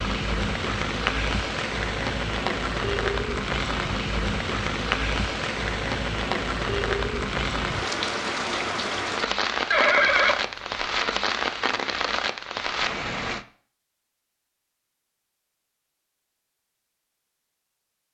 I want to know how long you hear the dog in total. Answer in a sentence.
You can't hear the dog here.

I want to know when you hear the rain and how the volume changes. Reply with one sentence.
You can hear the rain from 0.0 to 13.4 s, at a steady volume.